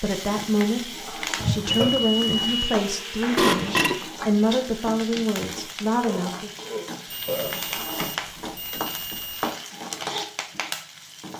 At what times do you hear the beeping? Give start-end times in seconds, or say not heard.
1.4-2.6, 7.0-9.6.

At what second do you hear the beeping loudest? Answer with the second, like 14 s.
2 s.